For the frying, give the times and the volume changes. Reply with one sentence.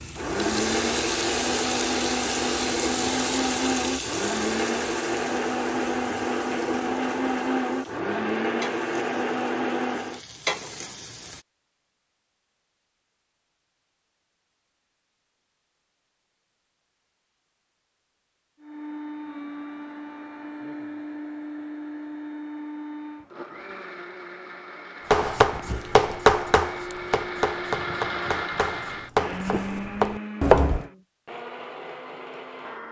You can hear the frying from 0.0 to 11.4 s, getting quieter then louder.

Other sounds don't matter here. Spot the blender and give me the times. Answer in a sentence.
The blender can be heard from 0.0 to 10.2 s and from 18.6 to 32.8 s.